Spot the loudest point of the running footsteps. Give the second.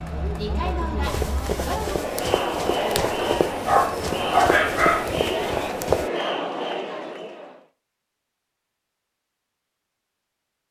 6 s.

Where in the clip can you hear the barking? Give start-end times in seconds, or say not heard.
3.1-5.2.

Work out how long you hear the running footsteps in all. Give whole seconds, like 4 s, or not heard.
5 s.